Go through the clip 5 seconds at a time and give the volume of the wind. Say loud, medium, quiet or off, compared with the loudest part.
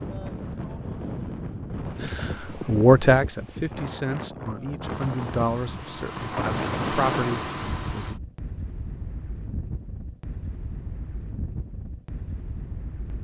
loud, loud, medium.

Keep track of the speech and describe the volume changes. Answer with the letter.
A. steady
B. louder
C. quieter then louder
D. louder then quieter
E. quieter
C.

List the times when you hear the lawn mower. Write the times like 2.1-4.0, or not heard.
4.8-8.2.